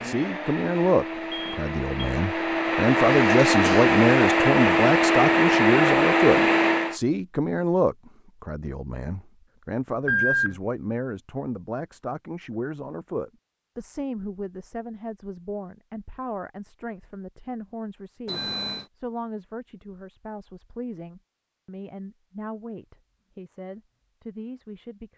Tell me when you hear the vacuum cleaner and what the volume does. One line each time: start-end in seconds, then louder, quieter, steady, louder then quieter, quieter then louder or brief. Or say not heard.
0.0-7.0 louder.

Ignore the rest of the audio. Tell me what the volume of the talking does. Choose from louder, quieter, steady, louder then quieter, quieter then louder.
quieter.